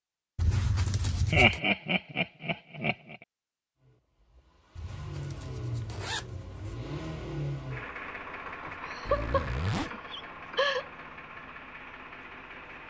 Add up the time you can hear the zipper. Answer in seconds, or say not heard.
4 s.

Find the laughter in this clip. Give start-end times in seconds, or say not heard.
1.3-3.1, 8.7-10.8.